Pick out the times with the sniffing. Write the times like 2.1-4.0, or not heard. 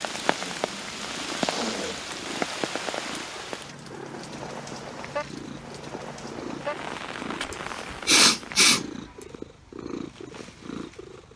0.3-2.2, 7.5-9.2.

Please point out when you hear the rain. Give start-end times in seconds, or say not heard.
0.0-8.7.